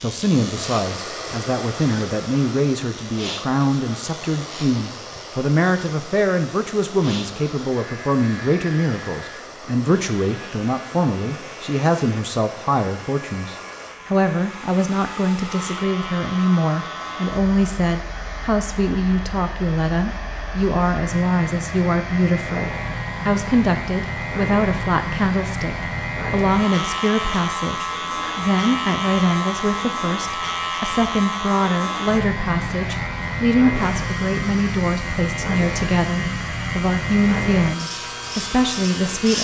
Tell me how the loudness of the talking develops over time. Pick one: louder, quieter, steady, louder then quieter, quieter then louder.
steady.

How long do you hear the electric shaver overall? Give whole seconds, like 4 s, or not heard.
39 s.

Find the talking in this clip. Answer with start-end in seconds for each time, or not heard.
0.0-39.3.